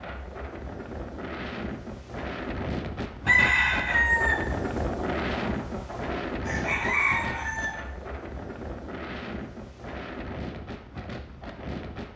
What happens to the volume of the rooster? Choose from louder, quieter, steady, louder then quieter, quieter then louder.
quieter then louder.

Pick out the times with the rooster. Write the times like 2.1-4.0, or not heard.
3.2-7.8.